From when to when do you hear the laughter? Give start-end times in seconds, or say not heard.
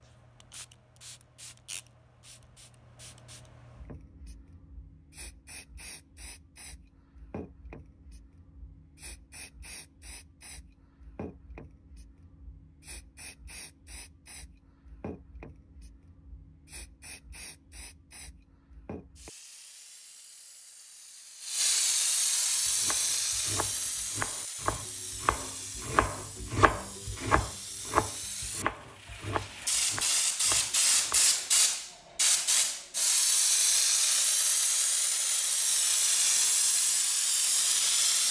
not heard.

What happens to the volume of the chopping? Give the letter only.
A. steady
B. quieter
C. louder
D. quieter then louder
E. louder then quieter
E.